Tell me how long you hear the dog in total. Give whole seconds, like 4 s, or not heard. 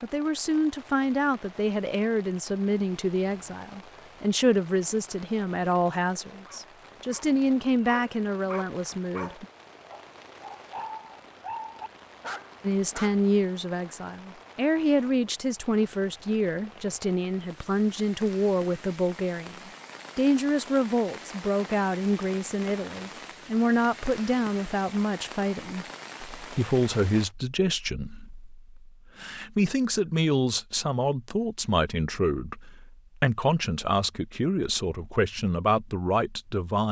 7 s.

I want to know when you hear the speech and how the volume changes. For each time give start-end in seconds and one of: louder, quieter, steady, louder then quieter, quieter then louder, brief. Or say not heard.
0.0-9.4 steady
12.6-36.8 steady.